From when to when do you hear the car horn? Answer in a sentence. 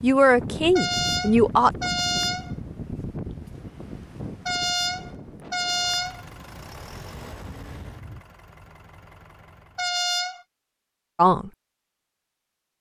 You can hear the car horn from 0.8 to 2.5 s, from 4.5 to 6.2 s and from 9.8 to 10.4 s.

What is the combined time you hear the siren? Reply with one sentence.
The siren can't be heard in this clip.